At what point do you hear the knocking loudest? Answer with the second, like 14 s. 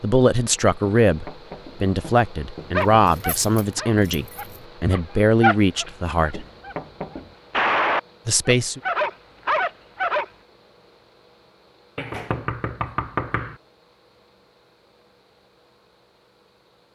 13 s.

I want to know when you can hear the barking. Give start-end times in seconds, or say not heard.
2.7-6.8, 7.5-10.2.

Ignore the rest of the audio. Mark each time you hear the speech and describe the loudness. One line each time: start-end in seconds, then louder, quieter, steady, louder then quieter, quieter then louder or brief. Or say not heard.
0.0-6.5 steady
8.2-8.8 brief.